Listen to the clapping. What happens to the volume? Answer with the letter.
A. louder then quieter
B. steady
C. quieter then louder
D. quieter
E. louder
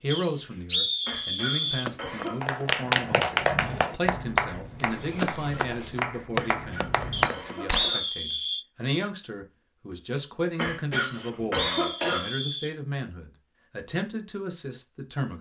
C.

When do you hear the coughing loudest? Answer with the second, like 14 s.
12 s.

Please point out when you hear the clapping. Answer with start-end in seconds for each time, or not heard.
2.4-7.9.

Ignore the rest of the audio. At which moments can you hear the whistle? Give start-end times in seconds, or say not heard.
0.1-1.9, 7.1-8.7, 10.9-12.8.